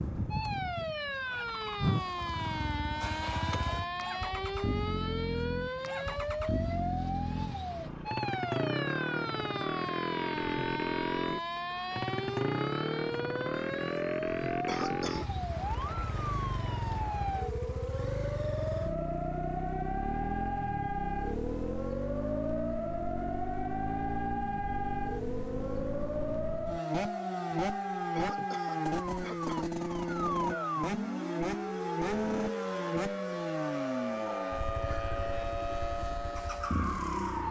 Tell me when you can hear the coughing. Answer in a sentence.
You can hear the coughing from 14.7 to 15.3 s and from 28.1 to 29.7 s.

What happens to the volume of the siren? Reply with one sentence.
The volume of the siren stays about the same.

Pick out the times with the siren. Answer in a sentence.
The siren can be heard from 0.0 to 37.4 s.